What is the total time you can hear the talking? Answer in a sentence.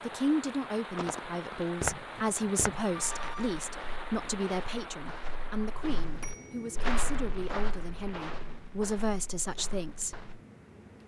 You can hear the talking for 10 seconds altogether.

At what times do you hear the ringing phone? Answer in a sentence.
You can hear the ringing phone from 3.0 to 3.5 s and from 6.2 to 6.7 s.